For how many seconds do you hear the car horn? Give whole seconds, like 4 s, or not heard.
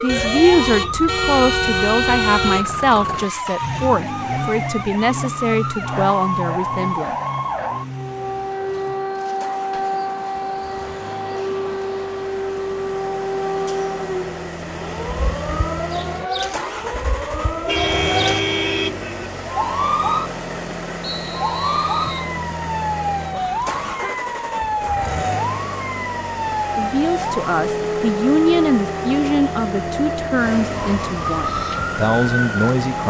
5 s.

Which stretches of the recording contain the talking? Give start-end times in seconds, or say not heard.
0.0-7.2, 26.8-33.0.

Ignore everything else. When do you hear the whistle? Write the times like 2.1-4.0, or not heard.
21.0-22.3.